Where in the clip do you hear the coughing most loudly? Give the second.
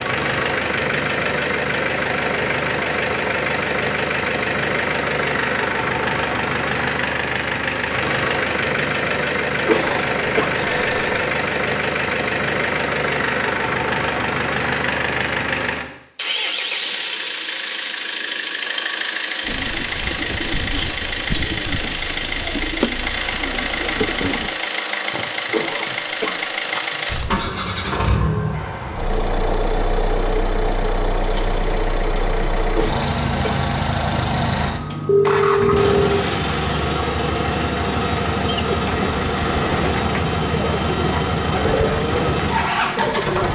10 s.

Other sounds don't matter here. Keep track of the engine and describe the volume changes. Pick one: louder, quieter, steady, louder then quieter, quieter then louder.
steady.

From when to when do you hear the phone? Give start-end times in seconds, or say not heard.
10.6-11.3, 35.0-36.1.